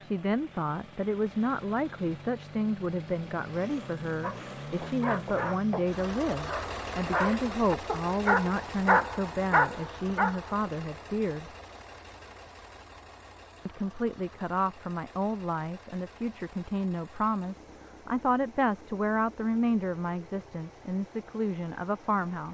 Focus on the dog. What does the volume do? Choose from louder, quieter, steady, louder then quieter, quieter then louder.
louder.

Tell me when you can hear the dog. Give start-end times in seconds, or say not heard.
4.2-10.7.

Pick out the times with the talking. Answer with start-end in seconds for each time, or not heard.
0.0-11.5, 13.7-22.4.